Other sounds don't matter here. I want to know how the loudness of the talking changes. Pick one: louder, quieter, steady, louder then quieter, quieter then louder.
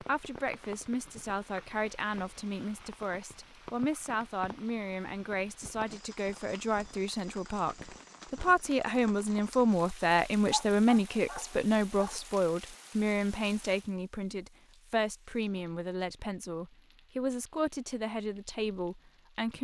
louder then quieter.